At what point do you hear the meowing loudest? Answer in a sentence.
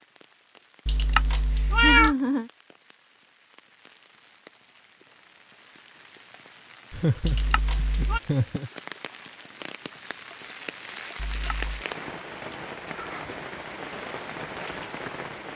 The loudest moment of the meowing is at 2 seconds.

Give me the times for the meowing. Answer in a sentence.
You can hear the meowing from 0.8 to 2.1 s, from 7.2 to 8.2 s and from 11.2 to 11.8 s.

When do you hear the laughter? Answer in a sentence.
The laughter can be heard from 1.8 to 2.5 s, from 6.9 to 8.7 s and from 12.9 to 13.4 s.